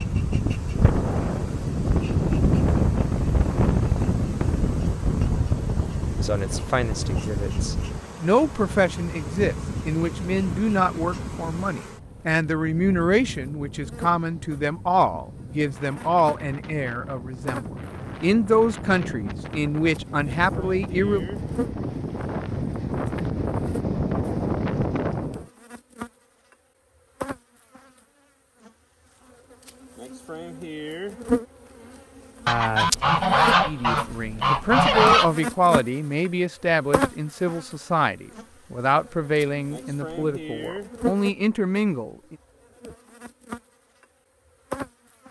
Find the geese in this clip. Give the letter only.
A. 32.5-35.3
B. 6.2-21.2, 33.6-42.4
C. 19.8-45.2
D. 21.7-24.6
A.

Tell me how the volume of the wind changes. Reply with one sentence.
The loudness of the wind goes down, then up.